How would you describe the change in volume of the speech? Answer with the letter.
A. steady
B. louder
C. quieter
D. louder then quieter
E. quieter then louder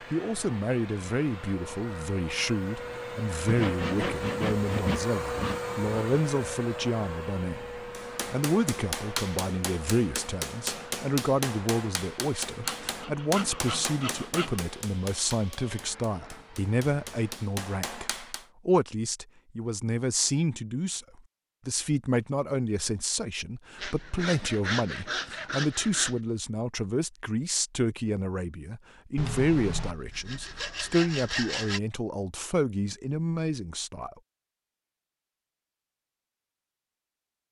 A.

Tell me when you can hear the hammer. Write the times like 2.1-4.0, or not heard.
7.9-18.4.